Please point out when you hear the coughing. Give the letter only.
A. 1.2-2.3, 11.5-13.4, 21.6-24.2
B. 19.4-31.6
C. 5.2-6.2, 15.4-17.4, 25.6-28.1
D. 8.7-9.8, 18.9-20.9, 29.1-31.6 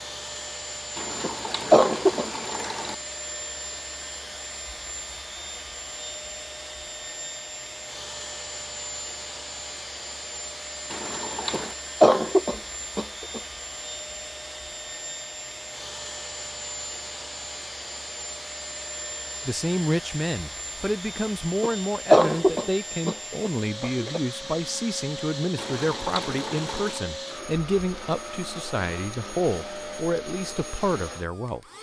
A.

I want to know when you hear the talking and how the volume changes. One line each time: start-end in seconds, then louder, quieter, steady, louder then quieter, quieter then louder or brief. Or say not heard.
19.4-31.6 steady.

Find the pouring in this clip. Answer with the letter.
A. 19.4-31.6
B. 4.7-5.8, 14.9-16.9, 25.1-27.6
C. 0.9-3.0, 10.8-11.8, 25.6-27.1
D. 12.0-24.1
C.